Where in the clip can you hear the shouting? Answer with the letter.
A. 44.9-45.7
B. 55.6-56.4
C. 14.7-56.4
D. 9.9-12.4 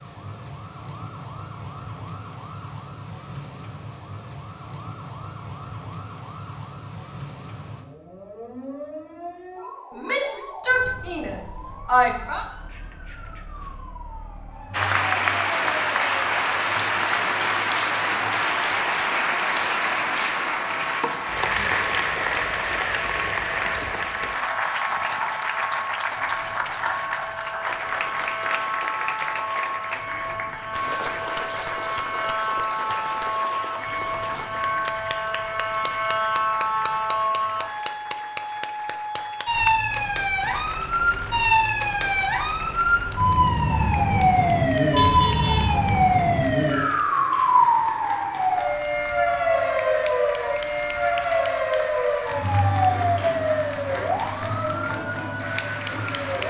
D.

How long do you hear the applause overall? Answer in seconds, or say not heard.
42 s.